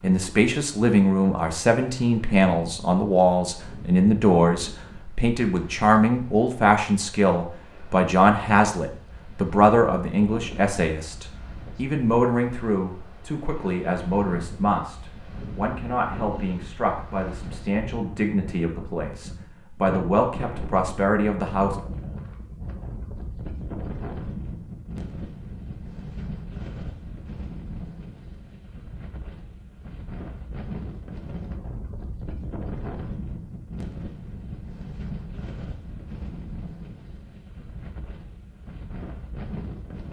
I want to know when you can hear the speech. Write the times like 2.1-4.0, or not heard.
0.0-21.8.